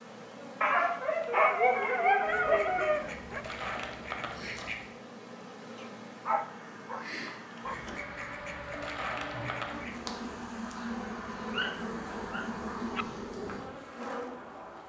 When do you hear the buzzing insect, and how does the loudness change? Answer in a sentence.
The buzzing insect can be heard from 0.0 to 14.8 s, getting louder.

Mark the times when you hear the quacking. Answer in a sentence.
The quacking can be heard from 2.2 to 4.9 s and from 7.6 to 10.0 s.